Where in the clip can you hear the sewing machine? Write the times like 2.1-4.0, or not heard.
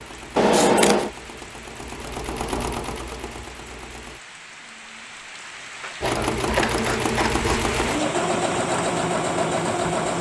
0.0-4.2, 6.0-10.1.